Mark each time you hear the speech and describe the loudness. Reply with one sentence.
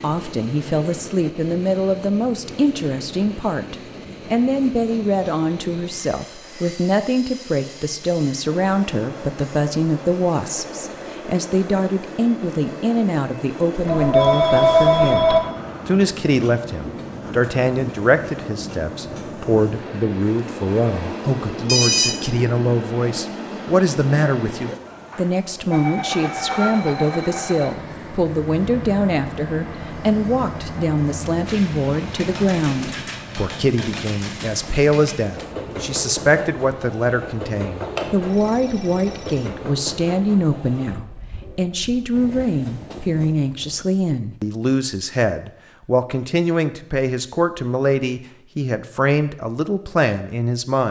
The speech can be heard from 0.0 to 50.8 s, at a steady volume.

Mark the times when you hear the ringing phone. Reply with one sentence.
You can hear the ringing phone from 13.8 to 15.4 s, from 20.2 to 22.1 s and from 37.8 to 39.5 s.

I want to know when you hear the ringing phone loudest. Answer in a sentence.
The loudest moment of the ringing phone is at 15 seconds.